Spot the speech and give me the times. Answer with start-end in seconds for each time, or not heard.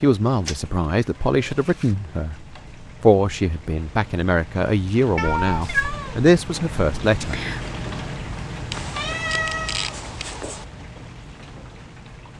0.0-2.4, 3.0-7.4.